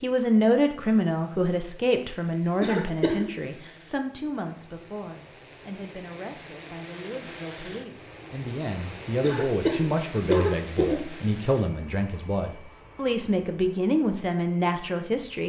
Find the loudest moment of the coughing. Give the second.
10 s.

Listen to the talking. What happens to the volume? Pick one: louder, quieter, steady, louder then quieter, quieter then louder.
quieter then louder.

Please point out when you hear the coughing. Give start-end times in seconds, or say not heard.
2.6-3.3, 9.2-11.0.